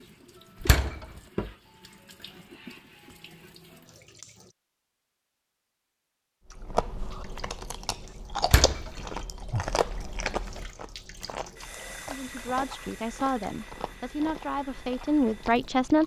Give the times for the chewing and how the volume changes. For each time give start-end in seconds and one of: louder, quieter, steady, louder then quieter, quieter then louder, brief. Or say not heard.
6.5-16.0 quieter.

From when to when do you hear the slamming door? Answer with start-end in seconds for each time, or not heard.
0.6-1.1, 8.4-8.9.